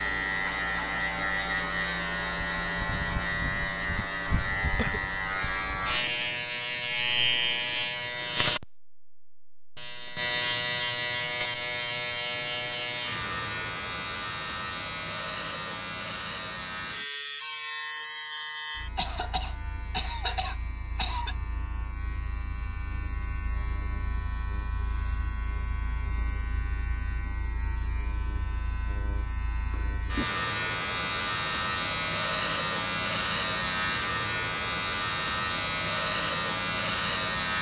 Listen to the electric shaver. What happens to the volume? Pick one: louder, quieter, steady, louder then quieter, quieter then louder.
quieter then louder.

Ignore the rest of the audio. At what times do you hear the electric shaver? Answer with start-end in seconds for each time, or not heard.
0.0-37.5.